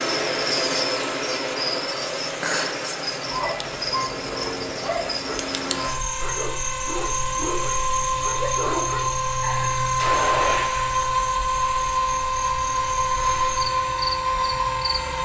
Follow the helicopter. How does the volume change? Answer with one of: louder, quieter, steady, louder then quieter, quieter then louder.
louder.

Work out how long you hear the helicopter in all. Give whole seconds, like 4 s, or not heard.
15 s.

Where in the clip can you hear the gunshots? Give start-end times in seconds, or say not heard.
9.9-11.3.